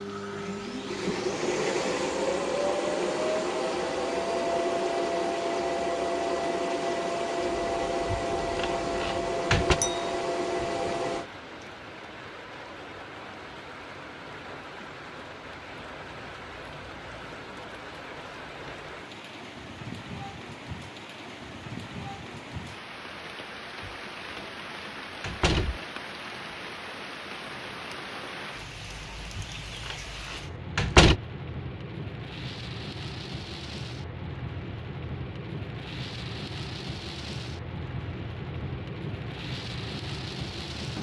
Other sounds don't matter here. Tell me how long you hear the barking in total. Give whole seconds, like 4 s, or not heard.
not heard.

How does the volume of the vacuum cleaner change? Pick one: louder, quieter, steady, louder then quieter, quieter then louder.
steady.